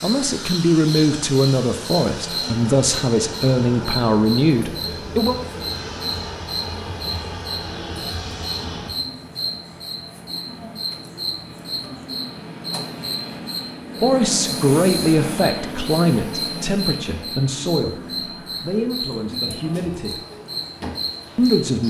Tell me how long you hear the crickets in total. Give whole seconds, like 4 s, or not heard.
22 s.